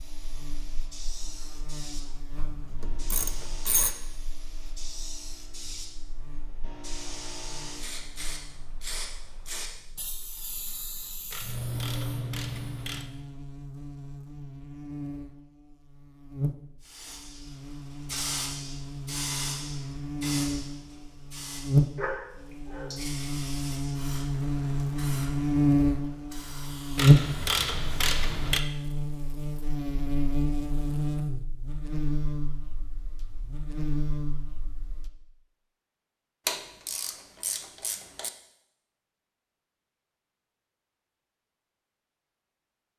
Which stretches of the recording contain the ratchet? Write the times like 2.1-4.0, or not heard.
2.4-4.0, 11.3-13.1, 26.9-28.6, 36.5-38.3.